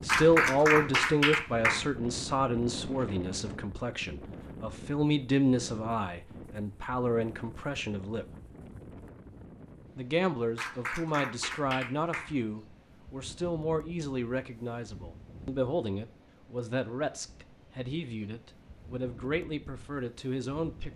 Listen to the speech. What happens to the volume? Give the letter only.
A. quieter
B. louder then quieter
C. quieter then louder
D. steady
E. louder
A.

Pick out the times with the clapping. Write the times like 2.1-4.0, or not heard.
0.1-1.9, 10.6-12.3.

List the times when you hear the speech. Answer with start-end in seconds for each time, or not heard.
0.0-8.2, 9.9-20.9.